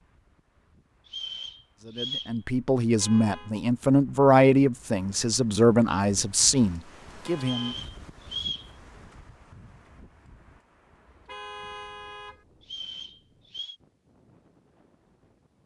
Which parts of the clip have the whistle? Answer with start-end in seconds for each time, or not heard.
1.1-2.4, 7.4-8.7, 12.6-13.8.